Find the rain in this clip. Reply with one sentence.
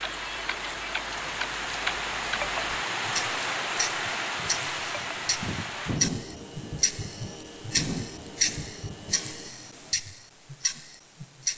You can hear the rain from 0.0 to 9.5 s.